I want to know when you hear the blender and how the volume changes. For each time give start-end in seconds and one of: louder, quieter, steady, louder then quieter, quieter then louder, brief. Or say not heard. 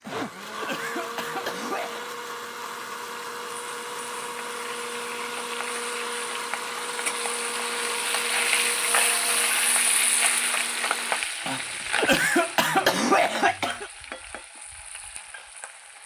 0.0-11.2 steady.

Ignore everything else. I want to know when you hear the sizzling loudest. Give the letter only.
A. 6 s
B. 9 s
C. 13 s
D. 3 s
B.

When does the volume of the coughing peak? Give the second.
13 s.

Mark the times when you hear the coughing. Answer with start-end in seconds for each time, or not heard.
0.1-2.0, 11.4-13.9.